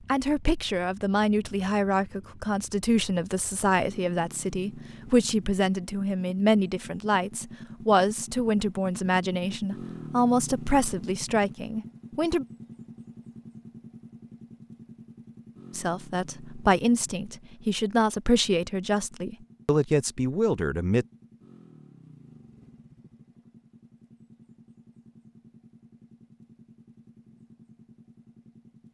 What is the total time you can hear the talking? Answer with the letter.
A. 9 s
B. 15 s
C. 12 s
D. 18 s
D.